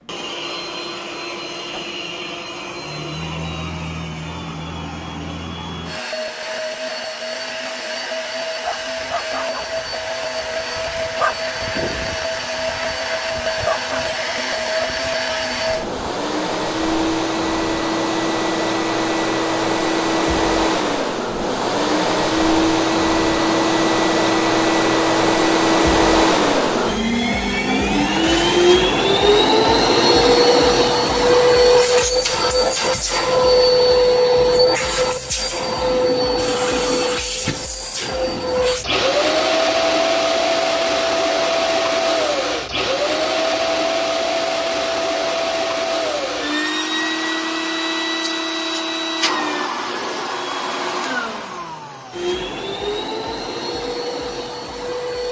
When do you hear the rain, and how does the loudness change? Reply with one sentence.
The rain can't be heard in this clip.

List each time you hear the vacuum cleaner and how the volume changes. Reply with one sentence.
The vacuum cleaner can be heard from 0.0 to 55.2 s, getting louder then quieter.